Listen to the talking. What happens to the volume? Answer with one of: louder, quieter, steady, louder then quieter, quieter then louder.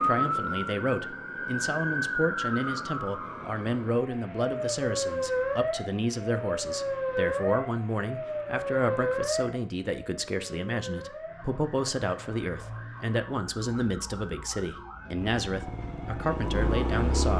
steady.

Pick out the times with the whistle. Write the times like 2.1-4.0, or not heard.
not heard.